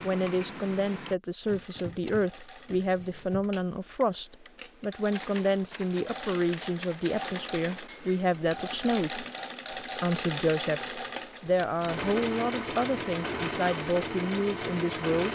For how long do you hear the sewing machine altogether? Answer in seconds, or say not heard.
15 s.